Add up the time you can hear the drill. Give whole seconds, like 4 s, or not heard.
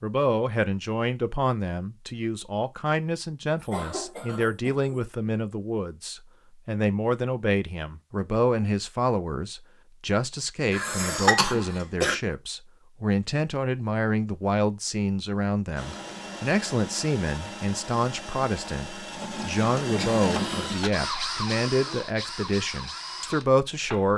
8 s.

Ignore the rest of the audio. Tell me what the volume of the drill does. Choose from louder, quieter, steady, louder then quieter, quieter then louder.
louder then quieter.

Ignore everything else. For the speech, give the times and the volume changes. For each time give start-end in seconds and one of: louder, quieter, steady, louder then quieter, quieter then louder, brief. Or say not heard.
0.0-24.1 steady.